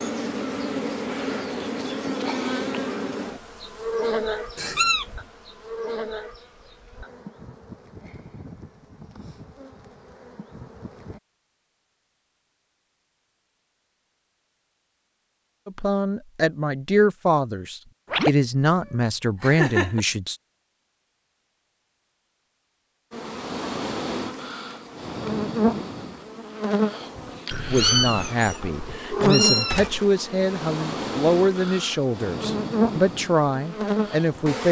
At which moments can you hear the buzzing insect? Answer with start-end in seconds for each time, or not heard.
0.0-11.2, 23.1-34.6.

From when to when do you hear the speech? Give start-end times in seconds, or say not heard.
15.7-20.4, 27.6-34.6.